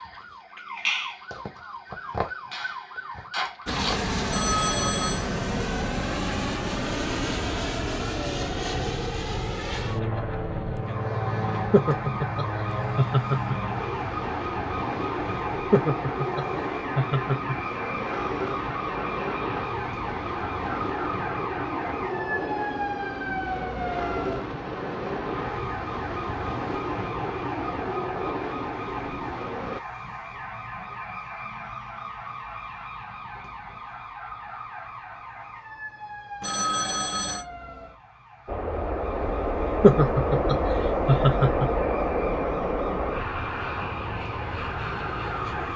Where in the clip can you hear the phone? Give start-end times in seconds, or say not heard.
4.3-5.2, 36.4-37.5.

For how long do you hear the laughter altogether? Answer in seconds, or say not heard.
6 s.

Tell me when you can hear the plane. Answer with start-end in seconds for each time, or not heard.
3.6-29.8, 38.5-45.7.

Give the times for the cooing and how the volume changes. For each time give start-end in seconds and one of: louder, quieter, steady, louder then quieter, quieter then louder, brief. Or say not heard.
not heard.